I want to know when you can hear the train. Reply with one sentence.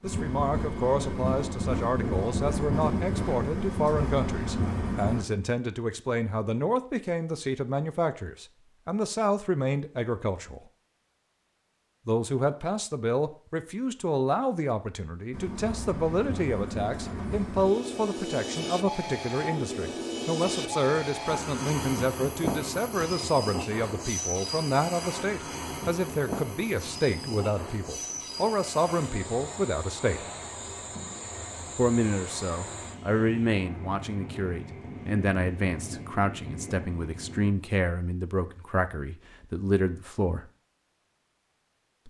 You can hear the train from 0.0 to 5.2 s and from 15.3 to 37.5 s.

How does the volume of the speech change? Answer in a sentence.
The loudness of the speech stays about the same.